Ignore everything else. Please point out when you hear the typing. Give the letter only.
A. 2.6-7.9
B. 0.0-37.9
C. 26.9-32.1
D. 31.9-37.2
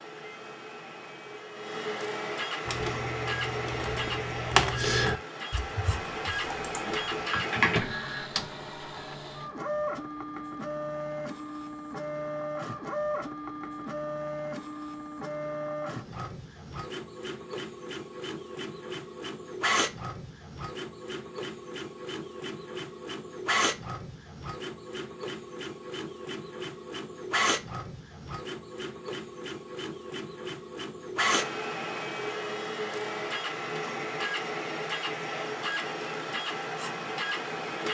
A.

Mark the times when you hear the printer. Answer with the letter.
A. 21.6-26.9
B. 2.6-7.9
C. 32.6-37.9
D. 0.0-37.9
D.